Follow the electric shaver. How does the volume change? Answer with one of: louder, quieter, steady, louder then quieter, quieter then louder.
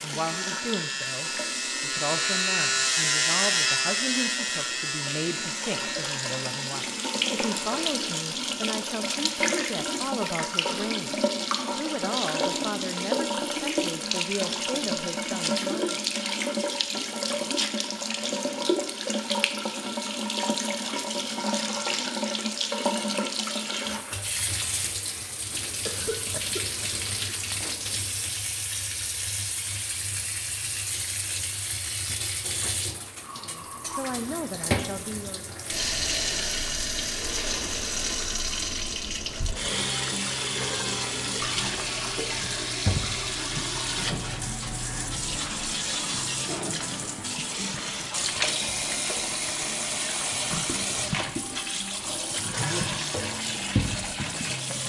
louder then quieter.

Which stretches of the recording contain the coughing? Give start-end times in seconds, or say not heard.
25.9-27.8.